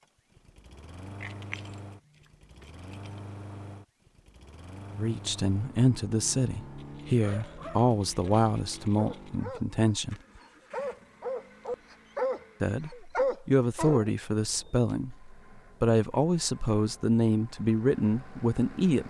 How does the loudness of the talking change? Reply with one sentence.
The volume of the talking stays about the same.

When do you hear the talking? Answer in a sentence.
You can hear the talking from 5.0 to 10.2 s and from 12.6 to 19.0 s.